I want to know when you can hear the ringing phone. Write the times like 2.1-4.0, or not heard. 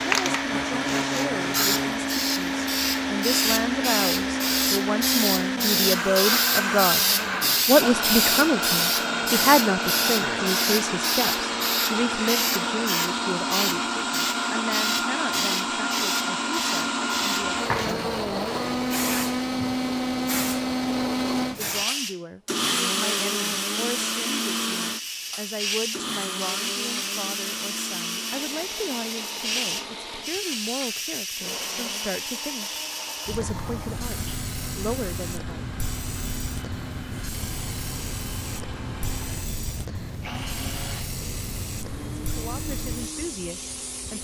not heard.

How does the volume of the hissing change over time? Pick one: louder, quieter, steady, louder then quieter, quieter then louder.
quieter.